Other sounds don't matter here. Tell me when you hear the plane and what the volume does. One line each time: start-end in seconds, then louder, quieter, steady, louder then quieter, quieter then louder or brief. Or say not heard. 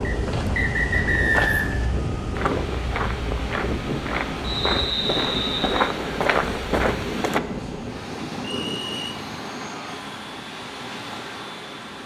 0.0-12.0 quieter.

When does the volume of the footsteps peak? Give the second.
6 s.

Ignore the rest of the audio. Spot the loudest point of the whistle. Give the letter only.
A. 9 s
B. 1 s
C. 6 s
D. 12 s
B.